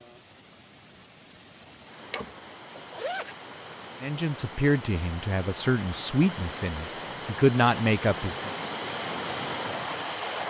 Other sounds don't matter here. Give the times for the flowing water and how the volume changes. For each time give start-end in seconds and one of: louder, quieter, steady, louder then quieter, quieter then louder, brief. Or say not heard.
0.0-10.4 louder.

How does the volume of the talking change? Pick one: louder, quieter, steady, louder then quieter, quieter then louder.
quieter then louder.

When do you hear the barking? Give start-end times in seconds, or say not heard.
not heard.